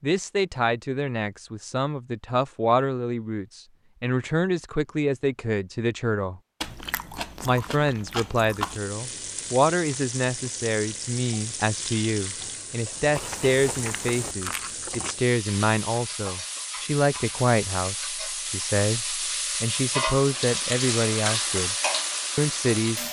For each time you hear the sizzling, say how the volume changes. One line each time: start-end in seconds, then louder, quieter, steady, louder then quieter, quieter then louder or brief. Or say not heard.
8.5-23.0 louder.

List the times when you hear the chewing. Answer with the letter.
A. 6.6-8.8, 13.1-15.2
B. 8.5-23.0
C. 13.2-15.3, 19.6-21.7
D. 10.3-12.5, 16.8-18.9
A.